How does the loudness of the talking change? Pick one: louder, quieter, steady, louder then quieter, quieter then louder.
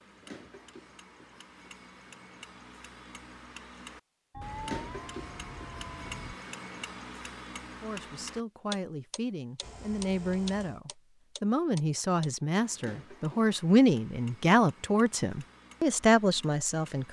louder.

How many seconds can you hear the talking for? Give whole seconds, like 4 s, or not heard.
9 s.